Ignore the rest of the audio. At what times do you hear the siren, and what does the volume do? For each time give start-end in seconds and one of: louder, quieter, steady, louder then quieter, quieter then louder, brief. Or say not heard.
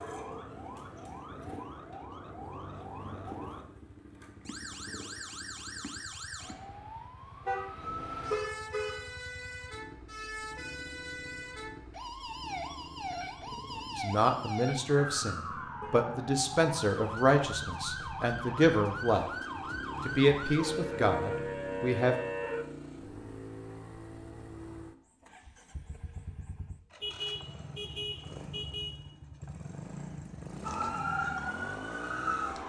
0.0-22.6 louder
30.6-32.6 brief.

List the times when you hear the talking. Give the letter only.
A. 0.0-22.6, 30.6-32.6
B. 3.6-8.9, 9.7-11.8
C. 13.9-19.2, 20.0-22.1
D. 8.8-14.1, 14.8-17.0
C.